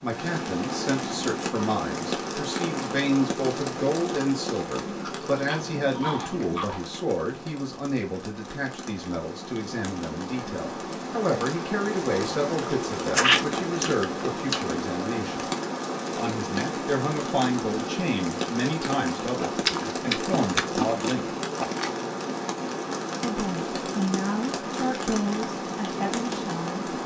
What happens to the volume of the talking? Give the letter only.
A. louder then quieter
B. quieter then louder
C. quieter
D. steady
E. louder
D.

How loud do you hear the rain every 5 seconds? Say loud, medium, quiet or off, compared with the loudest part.
loud, medium, loud, loud, loud, loud.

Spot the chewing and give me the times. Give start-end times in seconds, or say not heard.
4.8-6.8, 12.6-14.6, 19.4-21.9.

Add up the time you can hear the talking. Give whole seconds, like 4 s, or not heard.
24 s.